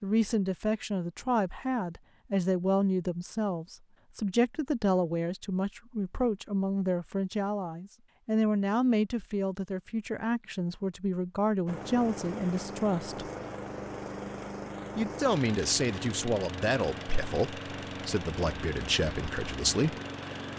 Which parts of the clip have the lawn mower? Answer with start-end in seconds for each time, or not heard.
11.7-20.5.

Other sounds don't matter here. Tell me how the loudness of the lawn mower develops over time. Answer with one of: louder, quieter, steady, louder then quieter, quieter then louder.
steady.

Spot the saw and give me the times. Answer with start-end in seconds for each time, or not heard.
not heard.